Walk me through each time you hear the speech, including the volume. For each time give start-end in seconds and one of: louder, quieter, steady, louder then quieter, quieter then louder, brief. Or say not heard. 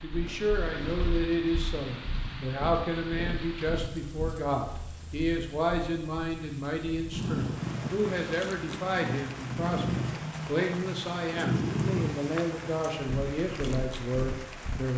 0.0-14.9 steady.